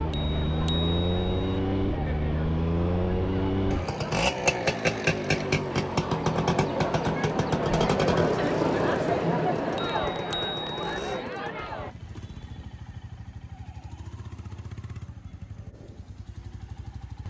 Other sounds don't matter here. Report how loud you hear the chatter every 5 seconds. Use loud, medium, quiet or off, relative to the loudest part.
medium, loud, medium, off.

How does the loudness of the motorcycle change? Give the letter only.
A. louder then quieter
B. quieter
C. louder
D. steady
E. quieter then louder
B.